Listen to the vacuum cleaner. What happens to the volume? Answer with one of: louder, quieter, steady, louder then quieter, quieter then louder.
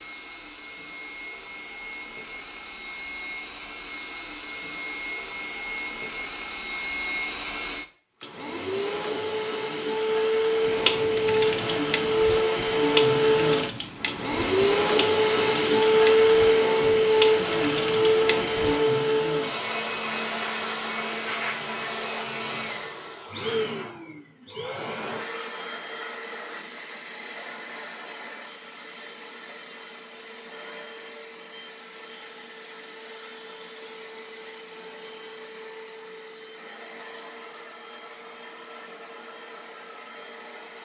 louder then quieter.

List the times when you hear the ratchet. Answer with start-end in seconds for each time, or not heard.
10.7-18.8.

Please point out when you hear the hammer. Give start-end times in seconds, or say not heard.
not heard.